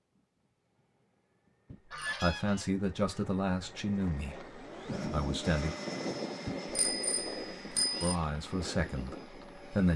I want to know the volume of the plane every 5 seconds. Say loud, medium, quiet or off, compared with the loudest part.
medium, loud.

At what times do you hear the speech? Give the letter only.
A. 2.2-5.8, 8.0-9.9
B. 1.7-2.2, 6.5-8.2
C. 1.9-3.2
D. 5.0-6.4
A.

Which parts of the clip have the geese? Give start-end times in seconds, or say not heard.
1.9-3.2.